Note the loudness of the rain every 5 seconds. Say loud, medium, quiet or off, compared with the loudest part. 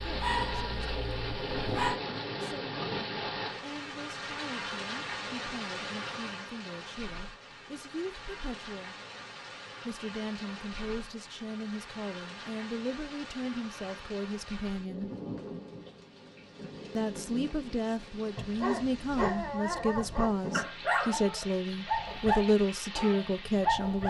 loud, medium, medium, medium, medium.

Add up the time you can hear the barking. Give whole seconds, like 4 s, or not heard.
8 s.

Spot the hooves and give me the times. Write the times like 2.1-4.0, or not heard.
not heard.